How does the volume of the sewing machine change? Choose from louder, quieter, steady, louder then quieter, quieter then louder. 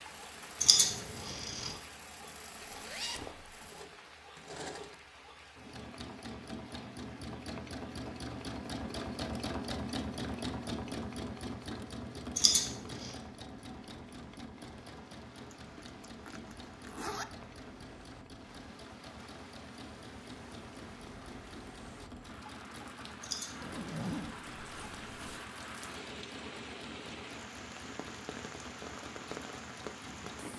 louder then quieter.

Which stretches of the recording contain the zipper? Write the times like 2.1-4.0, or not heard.
2.6-3.6, 15.5-17.2, 23.6-25.4.